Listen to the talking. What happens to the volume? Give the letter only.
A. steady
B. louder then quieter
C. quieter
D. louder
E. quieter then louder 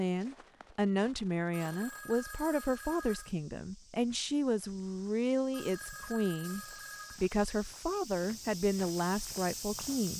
A.